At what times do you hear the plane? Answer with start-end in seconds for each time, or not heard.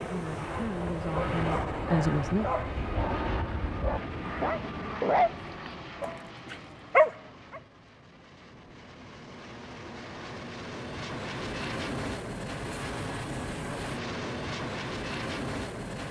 0.0-16.0.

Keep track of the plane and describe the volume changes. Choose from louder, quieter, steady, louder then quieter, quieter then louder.
quieter then louder.